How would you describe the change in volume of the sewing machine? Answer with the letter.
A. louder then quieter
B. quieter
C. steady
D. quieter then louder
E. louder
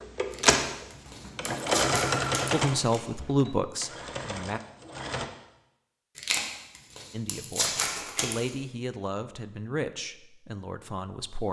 D.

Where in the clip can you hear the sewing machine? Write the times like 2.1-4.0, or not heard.
0.0-5.2.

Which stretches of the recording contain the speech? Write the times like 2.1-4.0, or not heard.
2.5-4.6, 7.1-11.4.